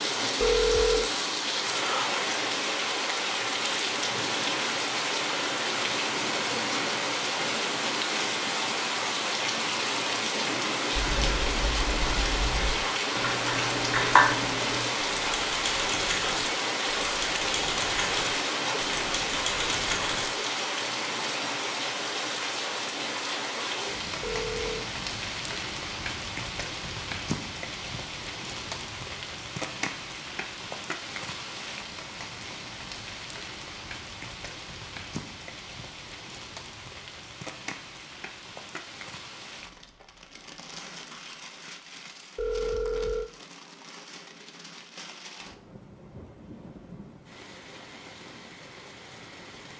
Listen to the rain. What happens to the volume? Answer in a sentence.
The volume of the rain goes down.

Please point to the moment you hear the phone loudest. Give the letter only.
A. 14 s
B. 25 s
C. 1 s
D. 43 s
C.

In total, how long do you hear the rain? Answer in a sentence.
The rain can be heard for 50 seconds in total.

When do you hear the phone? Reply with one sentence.
The phone can be heard from 0.4 to 1.1 s, from 24.2 to 24.9 s and from 42.4 to 43.3 s.